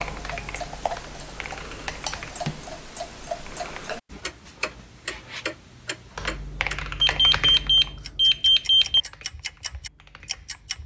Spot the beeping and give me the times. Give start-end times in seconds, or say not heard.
7.0-9.0.